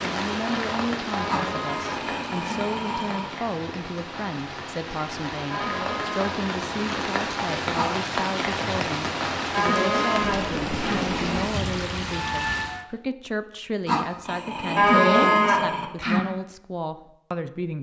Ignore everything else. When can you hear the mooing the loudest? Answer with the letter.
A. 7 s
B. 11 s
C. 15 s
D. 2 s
C.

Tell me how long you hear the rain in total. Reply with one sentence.
You can hear the rain for 13 seconds altogether.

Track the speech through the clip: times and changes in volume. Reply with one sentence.
The speech can be heard from 0.0 to 17.7 s, at a steady volume.